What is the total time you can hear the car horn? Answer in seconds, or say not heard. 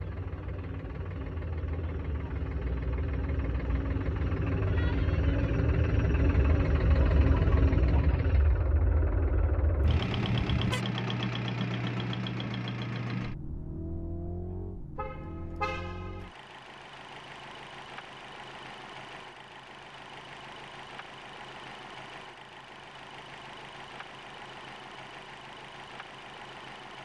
2 s.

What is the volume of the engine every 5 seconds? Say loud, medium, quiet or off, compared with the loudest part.
medium, loud, loud, quiet, quiet, quiet.